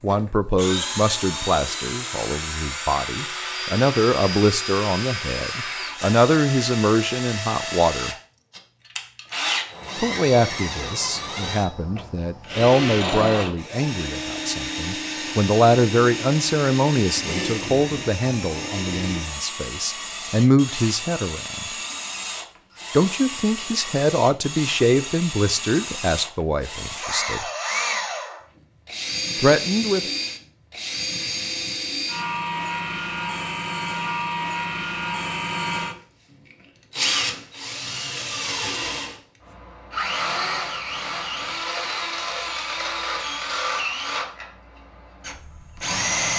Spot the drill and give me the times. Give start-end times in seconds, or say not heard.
0.1-46.3.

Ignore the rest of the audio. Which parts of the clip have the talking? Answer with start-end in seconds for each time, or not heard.
0.0-8.2, 10.0-21.6, 22.9-27.4, 29.4-30.1.